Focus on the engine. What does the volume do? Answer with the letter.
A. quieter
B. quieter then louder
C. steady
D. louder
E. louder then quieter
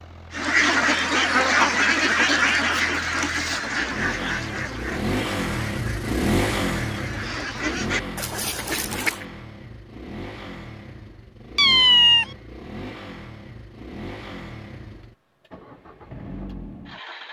E.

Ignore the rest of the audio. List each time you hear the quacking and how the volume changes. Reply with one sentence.
You can hear the quacking from 0.3 to 9.2 s, getting quieter then louder.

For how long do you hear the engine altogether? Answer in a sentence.
The engine can be heard for 17 seconds in total.